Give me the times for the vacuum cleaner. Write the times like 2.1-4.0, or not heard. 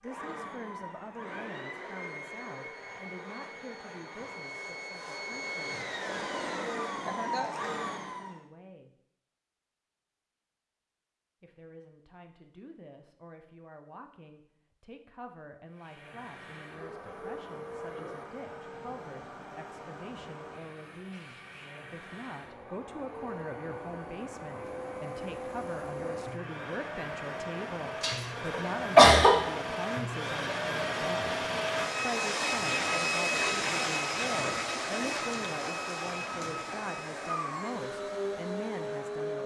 0.0-8.4, 15.7-39.4.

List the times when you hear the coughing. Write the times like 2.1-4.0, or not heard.
28.0-29.3.